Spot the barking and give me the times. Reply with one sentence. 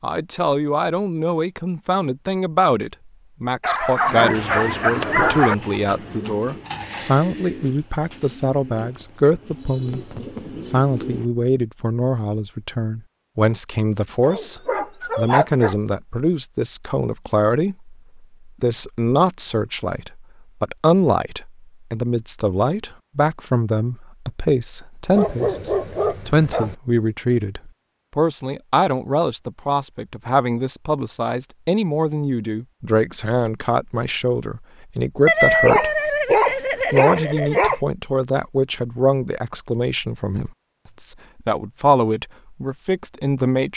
The barking can be heard from 3.6 to 5.5 s, from 14.2 to 15.8 s, from 25.1 to 26.8 s and from 35.2 to 37.8 s.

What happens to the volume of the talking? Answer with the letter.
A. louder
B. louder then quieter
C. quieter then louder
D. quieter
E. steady
E.